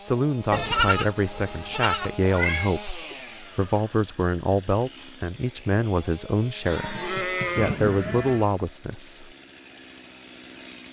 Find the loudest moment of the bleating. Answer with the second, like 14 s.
1 s.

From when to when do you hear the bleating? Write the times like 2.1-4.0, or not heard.
0.5-2.1, 6.7-8.5.